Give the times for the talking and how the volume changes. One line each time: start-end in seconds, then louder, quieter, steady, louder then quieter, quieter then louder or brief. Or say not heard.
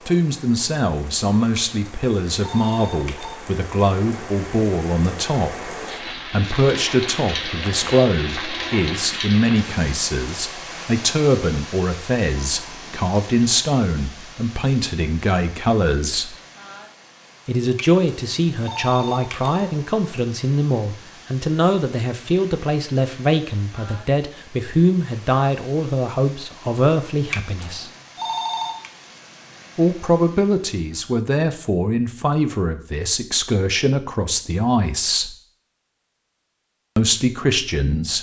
0.1-16.4 steady
17.4-27.9 steady
29.8-35.4 steady
37.0-38.1 brief.